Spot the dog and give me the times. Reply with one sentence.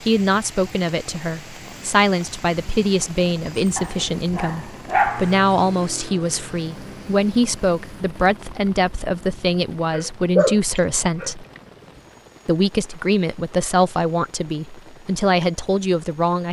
The dog can be heard from 3.8 to 5.5 s and from 9.9 to 11.3 s.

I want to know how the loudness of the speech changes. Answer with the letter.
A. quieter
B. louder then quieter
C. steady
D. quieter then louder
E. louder
C.